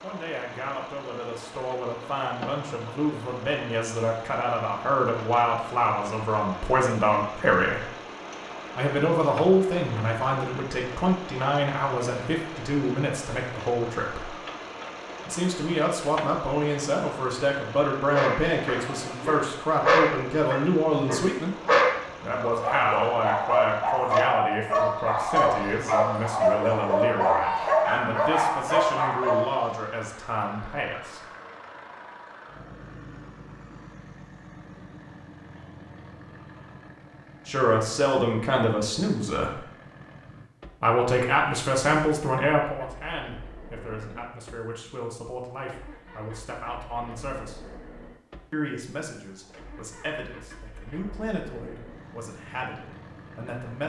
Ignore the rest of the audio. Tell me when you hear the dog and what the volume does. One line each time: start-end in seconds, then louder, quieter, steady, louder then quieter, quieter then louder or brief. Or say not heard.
18.1-29.5 steady.